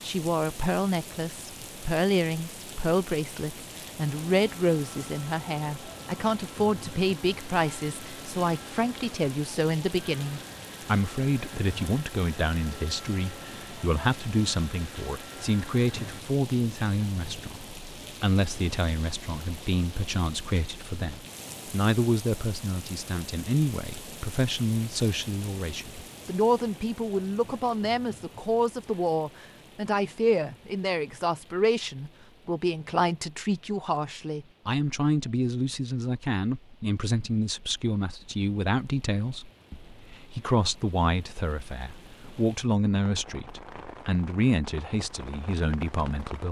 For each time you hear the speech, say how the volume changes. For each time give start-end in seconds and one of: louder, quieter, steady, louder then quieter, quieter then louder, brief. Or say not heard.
0.0-46.4 steady.